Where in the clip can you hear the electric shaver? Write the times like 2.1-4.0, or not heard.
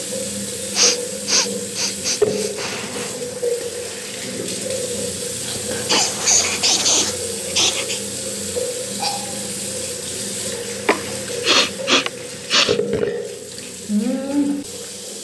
not heard.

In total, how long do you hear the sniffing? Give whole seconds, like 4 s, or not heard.
7 s.